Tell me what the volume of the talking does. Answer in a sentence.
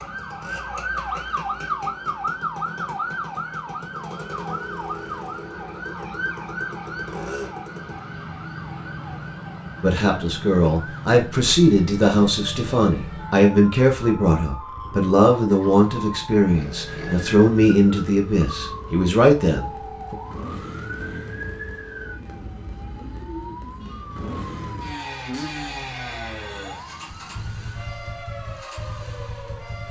The loudness of the talking stays about the same.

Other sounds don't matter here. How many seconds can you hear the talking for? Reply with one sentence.
You can hear the talking for 10 seconds altogether.